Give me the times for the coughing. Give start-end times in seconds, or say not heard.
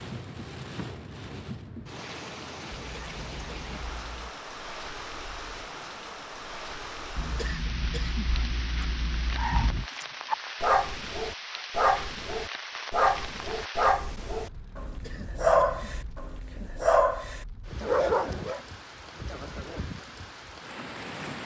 3.0-4.3, 7.2-9.8, 14.8-16.1.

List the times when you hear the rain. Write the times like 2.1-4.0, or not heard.
0.0-21.4.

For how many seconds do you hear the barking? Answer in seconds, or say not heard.
9 s.